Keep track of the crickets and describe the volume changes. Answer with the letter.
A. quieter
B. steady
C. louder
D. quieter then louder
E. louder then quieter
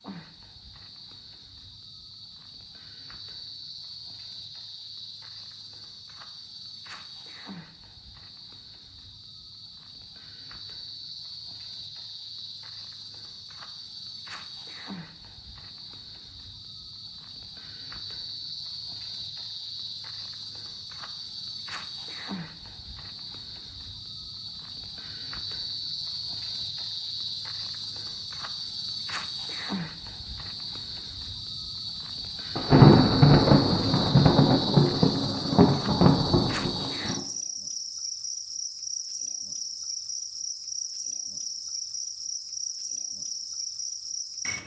C.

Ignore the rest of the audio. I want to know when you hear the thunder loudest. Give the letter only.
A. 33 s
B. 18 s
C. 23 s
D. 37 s
A.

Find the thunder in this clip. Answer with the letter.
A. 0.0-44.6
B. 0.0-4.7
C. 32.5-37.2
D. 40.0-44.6
C.